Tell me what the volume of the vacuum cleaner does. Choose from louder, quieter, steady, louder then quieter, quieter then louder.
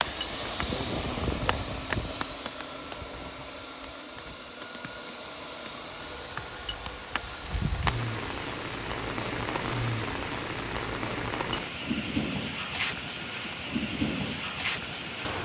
quieter.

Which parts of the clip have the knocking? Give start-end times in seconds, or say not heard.
not heard.